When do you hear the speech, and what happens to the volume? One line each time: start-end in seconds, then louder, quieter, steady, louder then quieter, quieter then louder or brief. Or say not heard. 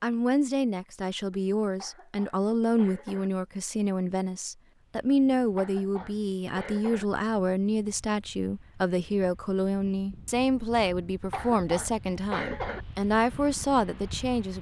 0.0-14.5 steady.